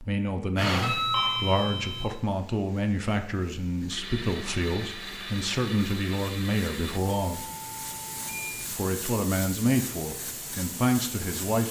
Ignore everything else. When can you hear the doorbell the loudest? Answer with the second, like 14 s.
1 s.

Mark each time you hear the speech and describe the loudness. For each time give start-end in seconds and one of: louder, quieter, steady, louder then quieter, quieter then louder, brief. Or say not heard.
0.0-7.5 steady
8.7-11.6 brief.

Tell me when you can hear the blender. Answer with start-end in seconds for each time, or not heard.
3.9-7.0.